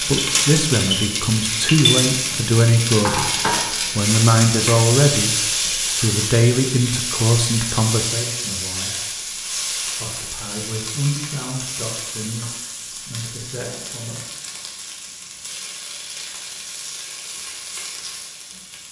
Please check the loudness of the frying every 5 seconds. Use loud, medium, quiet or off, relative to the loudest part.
loud, loud, medium, quiet.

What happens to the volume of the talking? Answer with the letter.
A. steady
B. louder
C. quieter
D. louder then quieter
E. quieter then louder
C.